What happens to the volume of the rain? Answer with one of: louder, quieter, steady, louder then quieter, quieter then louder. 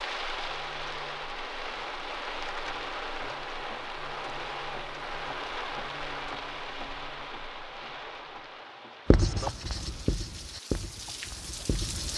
quieter.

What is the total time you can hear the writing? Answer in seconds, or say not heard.
3 s.